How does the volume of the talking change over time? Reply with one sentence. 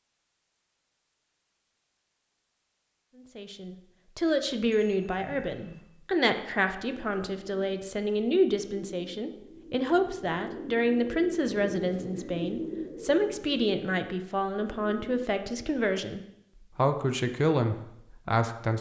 The loudness of the talking stays about the same.